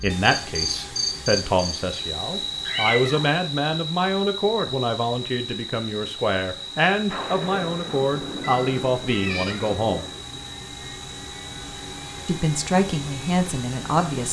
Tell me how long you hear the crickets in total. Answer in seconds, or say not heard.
14 s.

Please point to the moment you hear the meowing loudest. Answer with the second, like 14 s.
3 s.